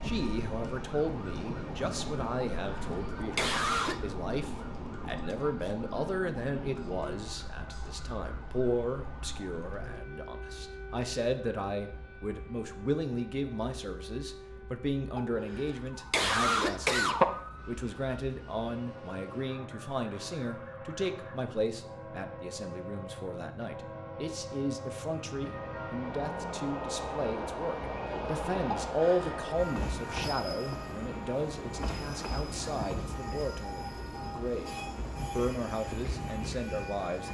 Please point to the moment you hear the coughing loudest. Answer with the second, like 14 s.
17 s.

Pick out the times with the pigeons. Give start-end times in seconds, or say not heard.
not heard.